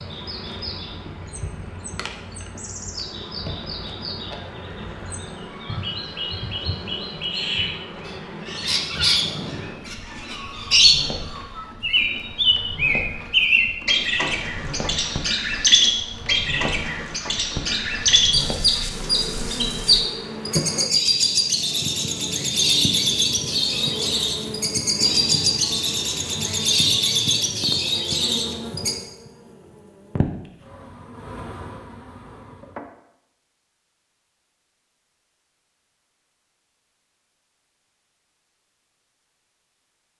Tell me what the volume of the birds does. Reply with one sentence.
The volume of the birds goes up.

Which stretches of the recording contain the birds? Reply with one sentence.
The birds can be heard from 0.0 to 28.9 s.